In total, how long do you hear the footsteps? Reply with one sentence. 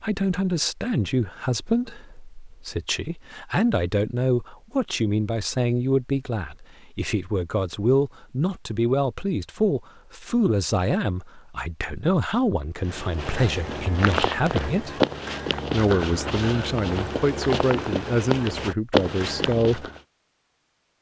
The footsteps can be heard for 7 seconds in total.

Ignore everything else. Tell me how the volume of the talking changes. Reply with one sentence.
The loudness of the talking stays about the same.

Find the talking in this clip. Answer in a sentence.
The talking can be heard from 0.0 to 15.0 s and from 15.7 to 19.9 s.